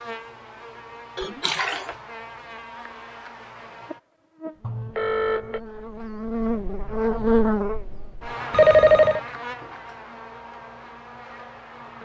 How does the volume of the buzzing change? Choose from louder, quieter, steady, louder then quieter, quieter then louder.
louder then quieter.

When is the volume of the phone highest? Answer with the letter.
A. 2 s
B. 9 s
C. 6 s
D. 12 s
B.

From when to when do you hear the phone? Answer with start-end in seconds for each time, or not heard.
1.1-1.9, 4.6-5.6, 8.5-9.2.